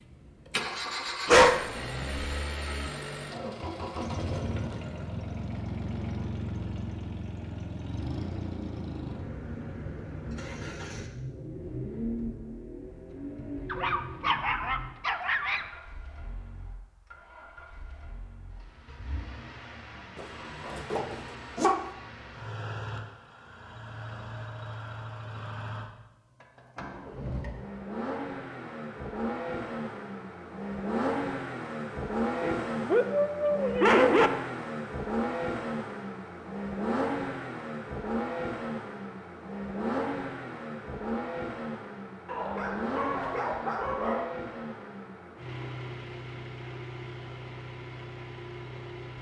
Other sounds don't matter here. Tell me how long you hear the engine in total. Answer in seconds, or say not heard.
49 s.